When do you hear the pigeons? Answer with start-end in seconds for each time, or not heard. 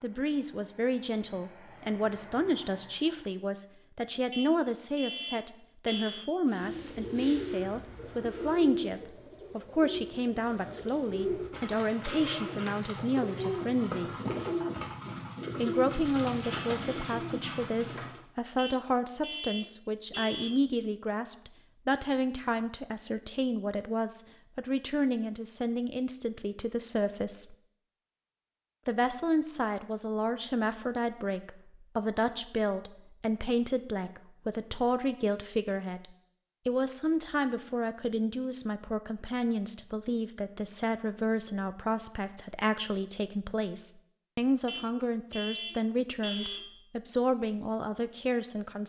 6.5-18.2.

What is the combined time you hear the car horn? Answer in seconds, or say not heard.
6 s.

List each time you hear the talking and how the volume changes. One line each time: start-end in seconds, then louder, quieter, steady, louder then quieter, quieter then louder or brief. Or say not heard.
0.0-14.1 steady
15.6-27.6 steady
28.9-36.0 steady
36.6-48.8 steady.